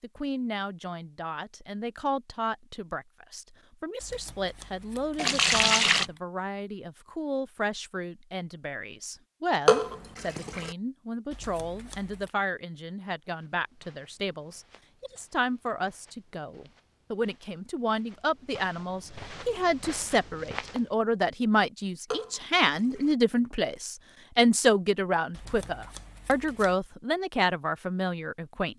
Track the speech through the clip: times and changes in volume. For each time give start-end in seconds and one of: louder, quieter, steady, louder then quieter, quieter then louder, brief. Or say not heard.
0.0-28.7 louder.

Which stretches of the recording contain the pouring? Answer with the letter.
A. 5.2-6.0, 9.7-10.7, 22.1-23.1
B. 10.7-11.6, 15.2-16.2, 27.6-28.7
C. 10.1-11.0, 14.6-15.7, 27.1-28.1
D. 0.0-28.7
A.